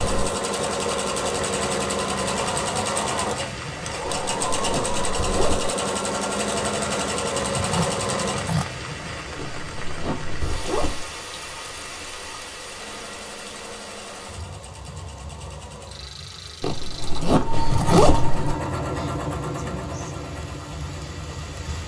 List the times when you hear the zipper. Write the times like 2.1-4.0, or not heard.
4.0-5.7, 9.3-11.1, 16.6-18.6.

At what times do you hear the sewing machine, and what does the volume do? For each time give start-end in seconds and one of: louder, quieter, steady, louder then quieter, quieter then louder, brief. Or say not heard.
0.0-8.6 steady
12.6-21.8 louder then quieter.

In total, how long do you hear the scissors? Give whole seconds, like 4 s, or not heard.
2 s.